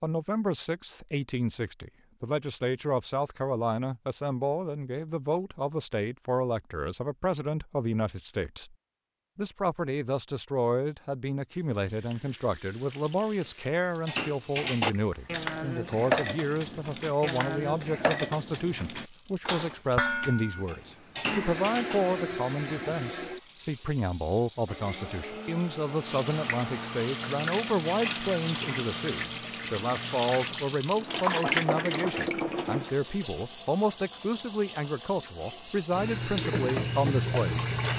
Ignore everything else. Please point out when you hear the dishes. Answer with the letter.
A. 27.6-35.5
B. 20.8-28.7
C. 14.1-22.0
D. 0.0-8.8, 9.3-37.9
C.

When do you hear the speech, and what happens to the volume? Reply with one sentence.
The speech can be heard from 0.0 to 8.8 s, at a steady volume; and from 9.3 to 37.9 s, at a steady volume.